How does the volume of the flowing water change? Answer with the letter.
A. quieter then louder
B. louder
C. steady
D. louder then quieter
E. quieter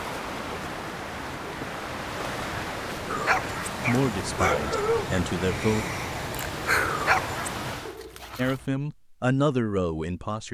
C.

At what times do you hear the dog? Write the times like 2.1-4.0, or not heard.
3.0-8.7.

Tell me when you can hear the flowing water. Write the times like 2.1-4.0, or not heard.
0.0-8.0.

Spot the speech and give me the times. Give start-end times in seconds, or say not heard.
3.9-5.8, 8.3-10.4.